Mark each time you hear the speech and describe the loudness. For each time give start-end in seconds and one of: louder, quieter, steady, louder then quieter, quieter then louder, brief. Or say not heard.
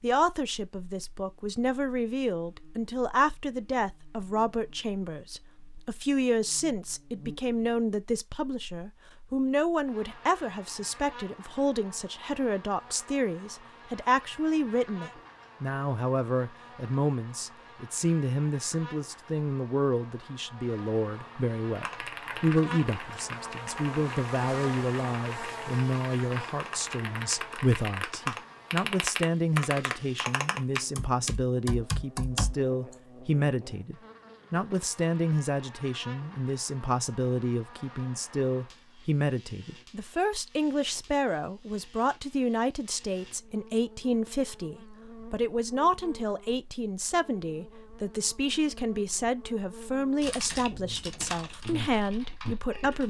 0.0-53.0 steady.